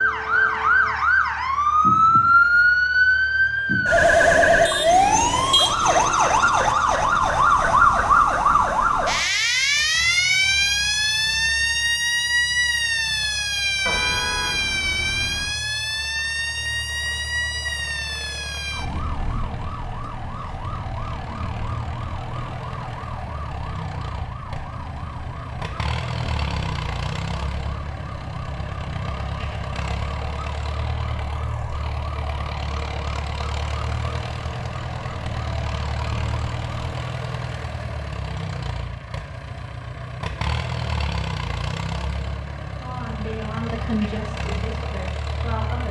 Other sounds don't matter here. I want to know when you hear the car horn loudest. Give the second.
14 s.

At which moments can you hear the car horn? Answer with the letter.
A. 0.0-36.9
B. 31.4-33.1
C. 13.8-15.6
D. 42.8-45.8
C.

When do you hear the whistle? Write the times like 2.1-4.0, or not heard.
not heard.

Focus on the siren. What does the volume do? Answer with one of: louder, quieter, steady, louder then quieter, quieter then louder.
quieter.